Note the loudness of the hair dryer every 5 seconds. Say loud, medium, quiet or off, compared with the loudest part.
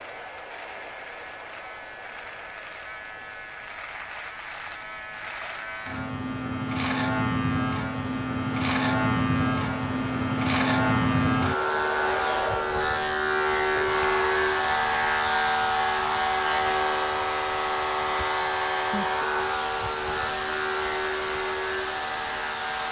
quiet, medium, loud, loud, loud.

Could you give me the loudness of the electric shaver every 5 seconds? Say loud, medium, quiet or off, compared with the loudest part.
quiet, loud, loud, loud, medium.